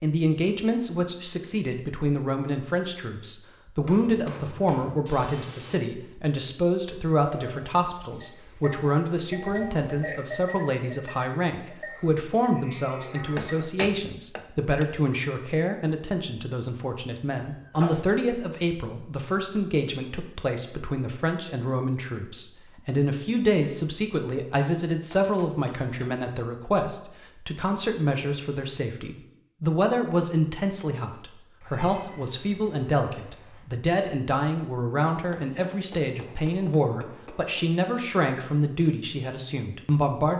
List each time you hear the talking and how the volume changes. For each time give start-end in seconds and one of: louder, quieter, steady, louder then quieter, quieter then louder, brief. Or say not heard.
0.0-40.3 steady.